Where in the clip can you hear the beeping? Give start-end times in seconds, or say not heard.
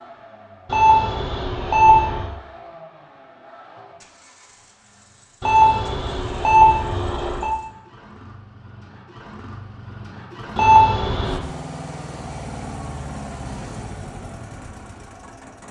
0.7-2.2, 5.4-7.5, 10.6-11.4.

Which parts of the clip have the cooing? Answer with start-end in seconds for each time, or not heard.
not heard.